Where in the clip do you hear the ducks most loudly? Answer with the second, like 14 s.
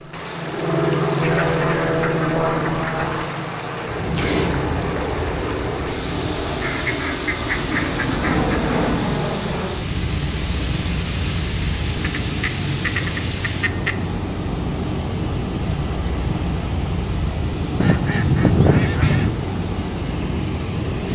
19 s.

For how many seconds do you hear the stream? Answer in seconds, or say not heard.
21 s.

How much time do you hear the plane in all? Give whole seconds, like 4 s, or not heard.
21 s.